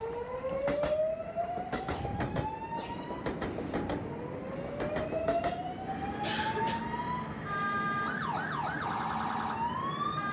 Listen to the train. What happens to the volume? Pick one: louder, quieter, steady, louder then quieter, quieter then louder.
steady.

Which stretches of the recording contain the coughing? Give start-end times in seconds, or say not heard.
1.8-3.1, 6.2-6.9.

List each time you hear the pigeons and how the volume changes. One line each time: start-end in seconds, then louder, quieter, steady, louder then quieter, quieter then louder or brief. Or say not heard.
not heard.